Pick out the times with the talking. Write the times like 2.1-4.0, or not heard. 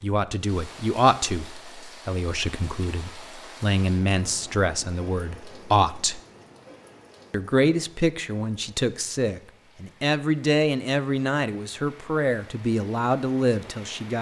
0.0-6.2, 7.3-14.1.